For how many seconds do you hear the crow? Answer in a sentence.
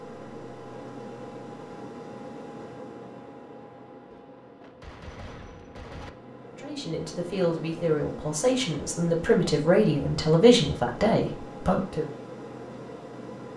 The crow can't be heard in this clip.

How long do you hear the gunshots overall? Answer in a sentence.
You can hear the gunshots for 2 seconds altogether.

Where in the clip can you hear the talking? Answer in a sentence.
The talking can be heard from 6.5 to 12.1 s.